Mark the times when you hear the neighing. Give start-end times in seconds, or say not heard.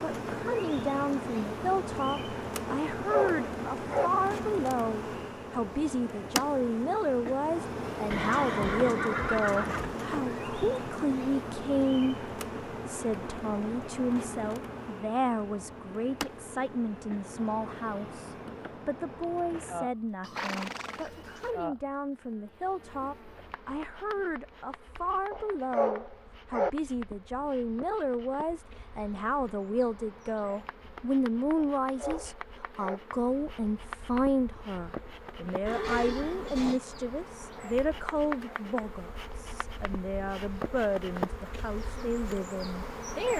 8.1-9.9, 20.2-21.5, 35.6-36.8.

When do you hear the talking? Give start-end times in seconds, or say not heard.
0.0-43.3.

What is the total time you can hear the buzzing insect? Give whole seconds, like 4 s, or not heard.
43 s.